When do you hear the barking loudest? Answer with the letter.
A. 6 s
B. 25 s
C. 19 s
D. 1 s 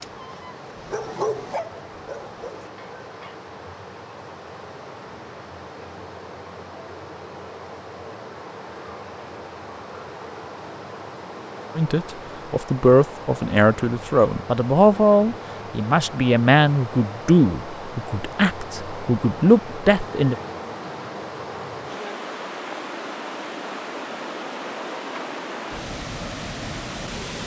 D.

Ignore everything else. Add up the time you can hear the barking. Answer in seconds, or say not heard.
3 s.